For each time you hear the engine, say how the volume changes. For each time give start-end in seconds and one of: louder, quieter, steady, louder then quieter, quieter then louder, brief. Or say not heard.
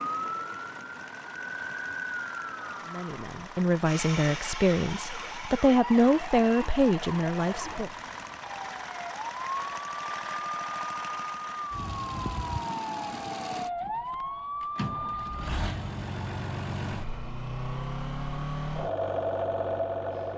0.0-20.3 louder.